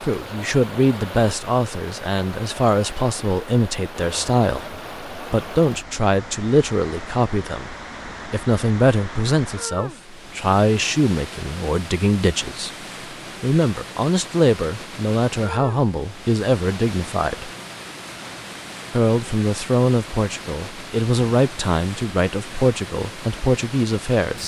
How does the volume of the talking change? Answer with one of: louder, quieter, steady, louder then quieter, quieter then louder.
steady.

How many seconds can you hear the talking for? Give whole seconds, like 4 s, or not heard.
22 s.